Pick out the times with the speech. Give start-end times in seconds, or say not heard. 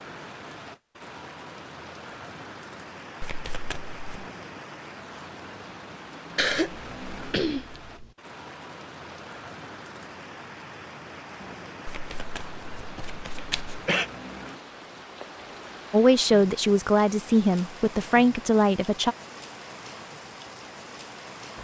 15.9-19.1.